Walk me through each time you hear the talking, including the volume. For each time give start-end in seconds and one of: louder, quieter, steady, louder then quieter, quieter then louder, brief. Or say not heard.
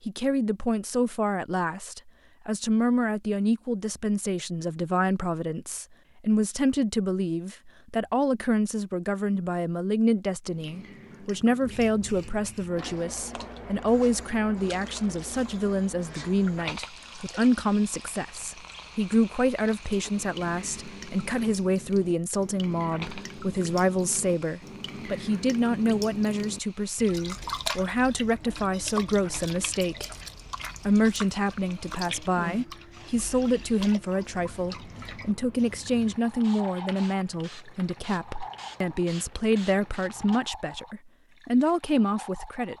0.1-30.1 steady
30.9-42.7 steady.